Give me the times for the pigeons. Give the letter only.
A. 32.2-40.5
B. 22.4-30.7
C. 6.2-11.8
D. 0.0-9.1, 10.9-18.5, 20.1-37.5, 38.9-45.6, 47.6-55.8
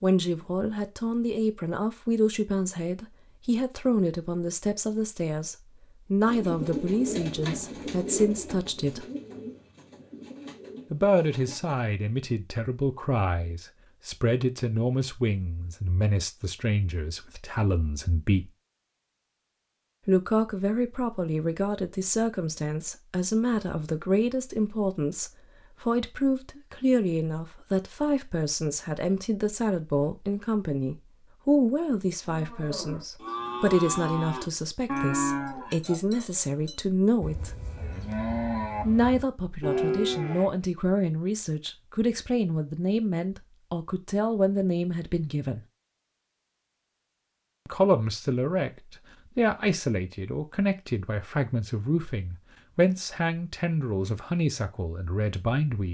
C.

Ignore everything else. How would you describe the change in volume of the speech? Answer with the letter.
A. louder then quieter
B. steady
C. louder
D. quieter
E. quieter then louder
B.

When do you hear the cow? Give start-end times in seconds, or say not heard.
32.2-40.5.